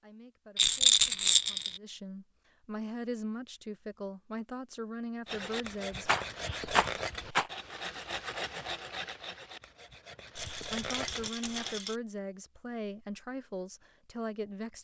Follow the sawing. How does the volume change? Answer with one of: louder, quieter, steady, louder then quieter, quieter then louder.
quieter then louder.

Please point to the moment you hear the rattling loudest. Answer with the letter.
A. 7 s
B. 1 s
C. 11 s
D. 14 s
B.